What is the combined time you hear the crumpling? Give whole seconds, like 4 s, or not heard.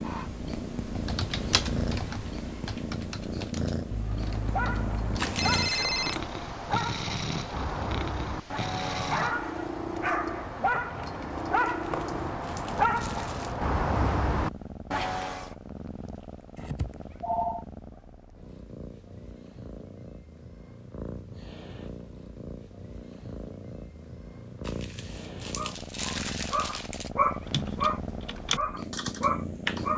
5 s.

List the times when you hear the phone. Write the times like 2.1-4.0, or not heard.
3.9-6.2, 16.6-17.6.